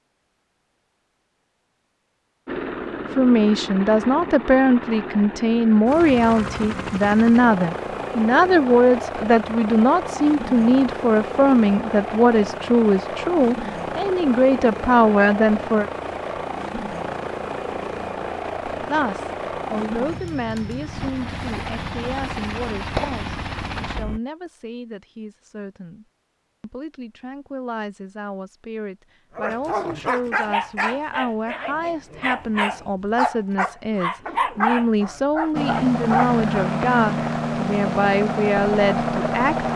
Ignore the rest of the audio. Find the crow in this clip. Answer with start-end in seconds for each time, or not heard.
not heard.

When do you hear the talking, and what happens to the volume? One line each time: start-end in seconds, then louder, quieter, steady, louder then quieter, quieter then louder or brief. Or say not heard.
3.1-15.9 steady
18.9-39.7 quieter then louder.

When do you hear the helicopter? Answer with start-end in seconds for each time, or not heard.
2.5-24.2, 35.5-39.7.